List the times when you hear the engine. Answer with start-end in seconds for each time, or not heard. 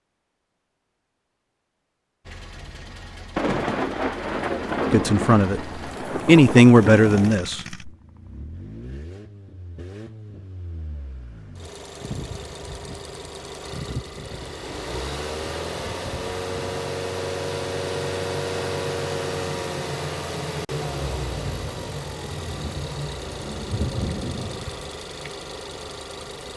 2.2-26.5.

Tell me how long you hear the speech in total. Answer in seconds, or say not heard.
2 s.